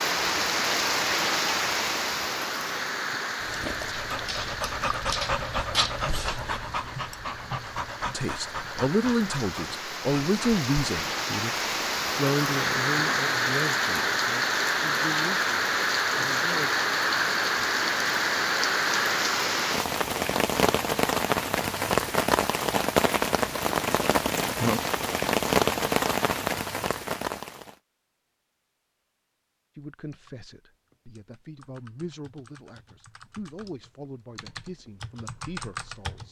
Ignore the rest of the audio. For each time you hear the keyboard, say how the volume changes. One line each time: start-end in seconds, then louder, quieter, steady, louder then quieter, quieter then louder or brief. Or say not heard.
30.1-36.2 louder.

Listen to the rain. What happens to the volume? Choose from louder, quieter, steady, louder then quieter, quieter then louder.
quieter then louder.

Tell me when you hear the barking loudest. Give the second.
6 s.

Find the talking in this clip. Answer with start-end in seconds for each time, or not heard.
8.1-16.8, 29.8-36.2.